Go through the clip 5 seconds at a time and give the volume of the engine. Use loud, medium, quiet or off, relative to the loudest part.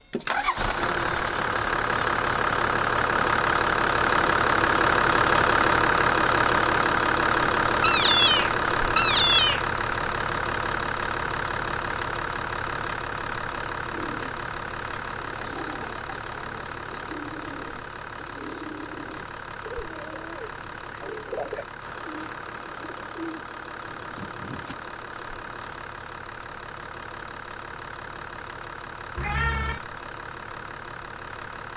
loud, loud, medium, quiet, quiet, quiet, quiet.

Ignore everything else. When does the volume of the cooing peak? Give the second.
21 s.